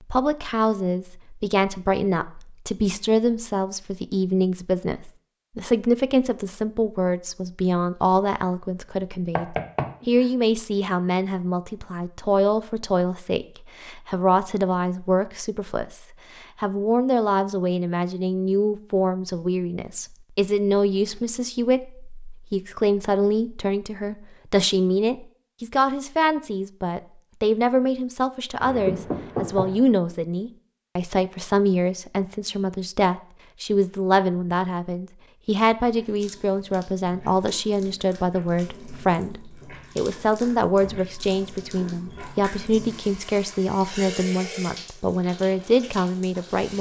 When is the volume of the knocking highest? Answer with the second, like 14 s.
29 s.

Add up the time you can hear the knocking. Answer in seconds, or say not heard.
2 s.